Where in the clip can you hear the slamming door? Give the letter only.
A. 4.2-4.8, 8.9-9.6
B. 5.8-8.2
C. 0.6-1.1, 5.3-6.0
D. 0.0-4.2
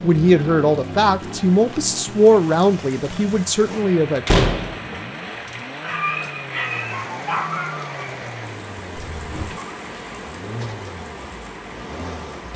A.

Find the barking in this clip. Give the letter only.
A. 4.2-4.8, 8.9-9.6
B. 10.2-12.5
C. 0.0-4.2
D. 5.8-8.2
D.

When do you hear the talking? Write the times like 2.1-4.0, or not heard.
0.0-4.2.